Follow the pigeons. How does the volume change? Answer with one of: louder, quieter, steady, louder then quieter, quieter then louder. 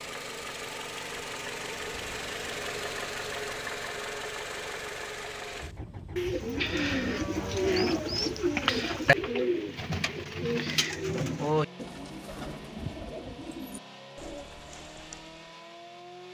quieter.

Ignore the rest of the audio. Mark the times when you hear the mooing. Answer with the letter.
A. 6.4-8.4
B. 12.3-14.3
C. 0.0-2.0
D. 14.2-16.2
A.